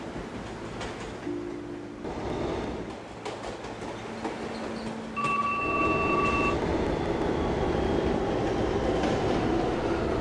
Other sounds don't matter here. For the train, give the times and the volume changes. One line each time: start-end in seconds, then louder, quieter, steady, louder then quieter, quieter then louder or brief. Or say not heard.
0.0-10.1 louder.